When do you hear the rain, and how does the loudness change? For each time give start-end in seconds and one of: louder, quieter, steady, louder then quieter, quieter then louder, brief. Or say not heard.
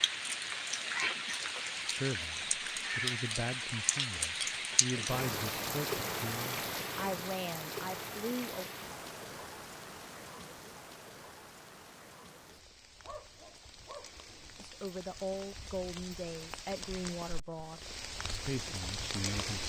0.0-19.6 quieter then louder.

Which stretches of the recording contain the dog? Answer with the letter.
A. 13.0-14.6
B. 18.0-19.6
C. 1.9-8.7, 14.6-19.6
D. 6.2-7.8
A.